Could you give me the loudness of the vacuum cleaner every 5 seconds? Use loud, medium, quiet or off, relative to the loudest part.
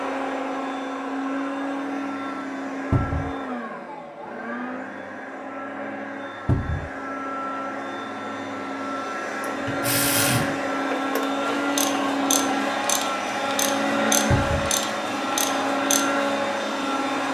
medium, medium, loud, loud.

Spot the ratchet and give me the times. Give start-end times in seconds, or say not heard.
9.4-16.2.